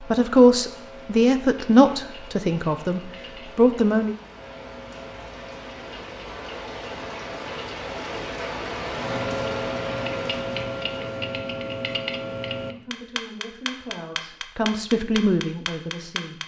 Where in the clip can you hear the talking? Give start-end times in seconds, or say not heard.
0.0-4.2, 12.7-16.4.